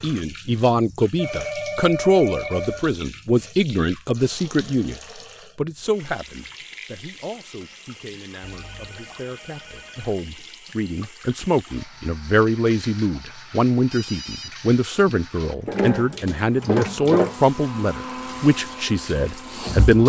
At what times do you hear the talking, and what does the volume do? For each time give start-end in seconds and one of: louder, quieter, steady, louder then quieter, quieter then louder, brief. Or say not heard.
0.0-20.0 quieter then louder.